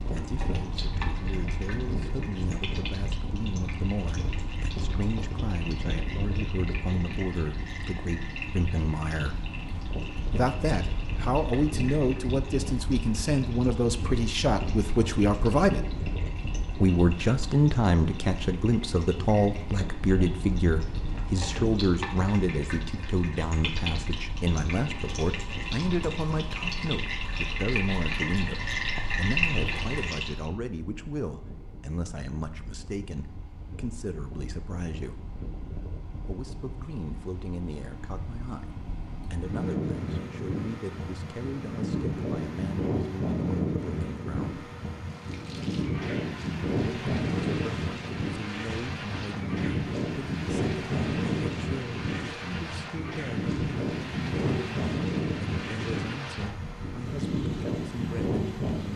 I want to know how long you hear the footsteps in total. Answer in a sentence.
The footsteps can't be heard in this clip.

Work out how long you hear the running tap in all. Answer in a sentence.
The running tap can be heard for 44 seconds in total.